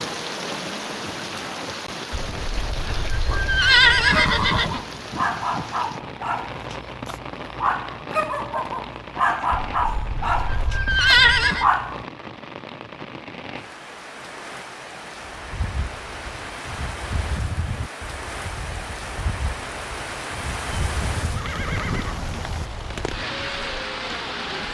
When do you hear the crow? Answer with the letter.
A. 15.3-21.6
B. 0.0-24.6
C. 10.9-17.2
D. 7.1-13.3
A.